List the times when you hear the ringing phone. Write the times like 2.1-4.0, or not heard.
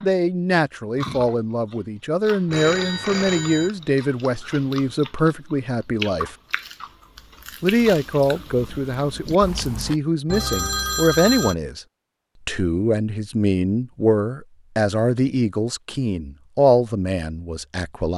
2.5-3.7, 10.2-11.6.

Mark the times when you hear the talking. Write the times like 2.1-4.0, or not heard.
0.0-6.3, 7.6-11.8, 12.4-18.1.